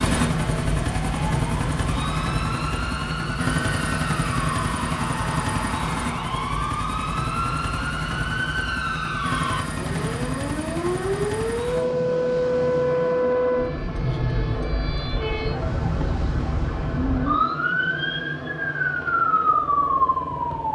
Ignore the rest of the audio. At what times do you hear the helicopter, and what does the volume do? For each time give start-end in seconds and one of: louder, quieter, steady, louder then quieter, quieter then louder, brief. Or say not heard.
0.0-20.7 quieter.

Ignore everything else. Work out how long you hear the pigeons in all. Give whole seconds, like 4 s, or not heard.
not heard.